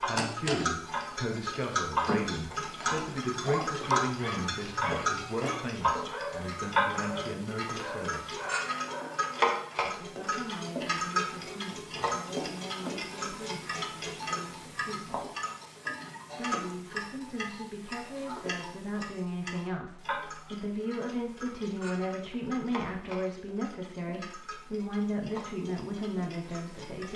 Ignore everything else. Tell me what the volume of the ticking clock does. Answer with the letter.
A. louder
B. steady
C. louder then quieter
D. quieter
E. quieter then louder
D.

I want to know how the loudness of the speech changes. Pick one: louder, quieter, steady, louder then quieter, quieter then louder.
quieter then louder.